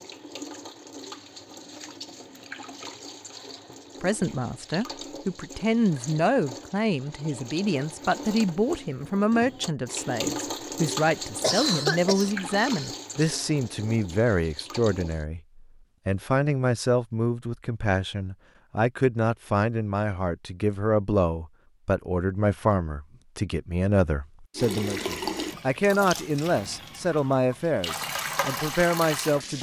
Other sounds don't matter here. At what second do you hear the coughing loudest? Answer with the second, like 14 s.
12 s.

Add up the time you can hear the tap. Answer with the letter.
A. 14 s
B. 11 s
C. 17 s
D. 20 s
D.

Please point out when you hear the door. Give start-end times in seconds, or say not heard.
not heard.